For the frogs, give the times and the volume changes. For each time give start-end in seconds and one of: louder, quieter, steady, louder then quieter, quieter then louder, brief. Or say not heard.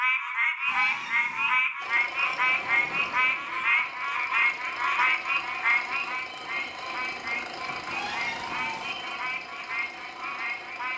0.0-10.9 quieter.